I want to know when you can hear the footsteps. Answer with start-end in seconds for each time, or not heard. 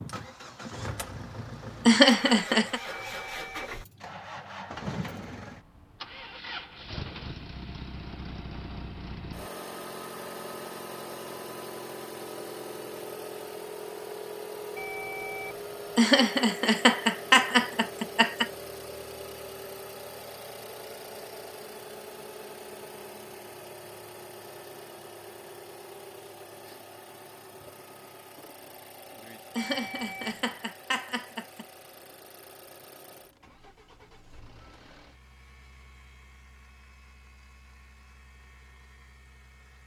not heard.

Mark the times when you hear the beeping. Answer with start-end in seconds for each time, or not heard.
2.9-4.2, 14.8-16.0, 29.6-30.4.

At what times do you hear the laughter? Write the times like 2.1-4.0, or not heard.
1.9-2.8, 15.9-18.5, 29.6-31.6.